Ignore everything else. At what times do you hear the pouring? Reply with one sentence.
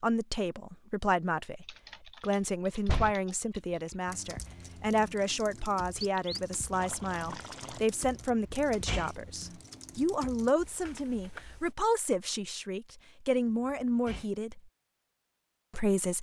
You can hear the pouring from 6.0 to 7.8 s.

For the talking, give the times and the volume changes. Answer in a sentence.
You can hear the talking from 0.0 to 14.6 s, at a steady volume; and briefly from 15.7 to 16.1 s.